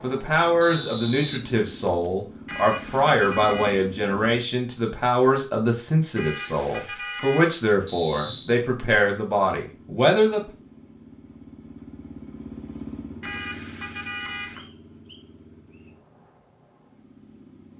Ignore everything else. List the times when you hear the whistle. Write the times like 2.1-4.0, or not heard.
0.6-2.1, 7.8-8.6, 14.8-15.9.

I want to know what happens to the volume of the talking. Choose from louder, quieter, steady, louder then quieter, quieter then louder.
steady.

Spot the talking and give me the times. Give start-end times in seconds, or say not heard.
0.0-10.5.